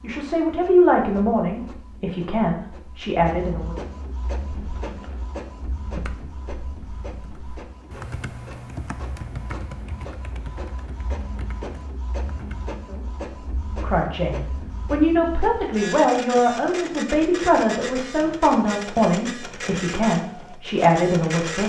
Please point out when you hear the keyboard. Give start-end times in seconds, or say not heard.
4.2-12.8.